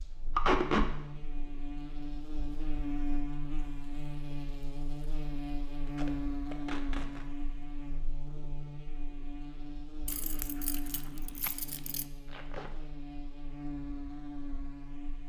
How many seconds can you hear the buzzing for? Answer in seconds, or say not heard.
15 s.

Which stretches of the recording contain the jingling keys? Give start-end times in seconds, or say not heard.
10.1-12.1.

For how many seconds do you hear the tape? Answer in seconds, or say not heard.
2 s.